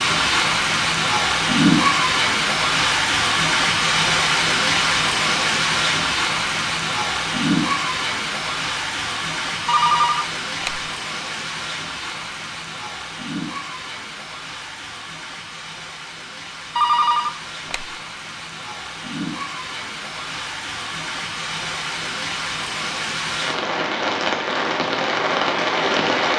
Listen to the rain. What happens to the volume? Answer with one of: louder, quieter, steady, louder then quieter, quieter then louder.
quieter then louder.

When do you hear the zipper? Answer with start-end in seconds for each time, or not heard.
not heard.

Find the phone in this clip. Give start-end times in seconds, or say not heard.
9.7-10.8, 16.8-17.9.